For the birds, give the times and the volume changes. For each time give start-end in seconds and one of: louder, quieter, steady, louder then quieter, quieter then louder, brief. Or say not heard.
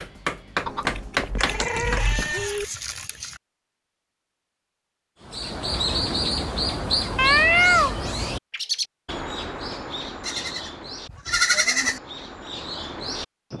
5.2-13.5 quieter.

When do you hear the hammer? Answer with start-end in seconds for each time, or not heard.
0.0-2.3.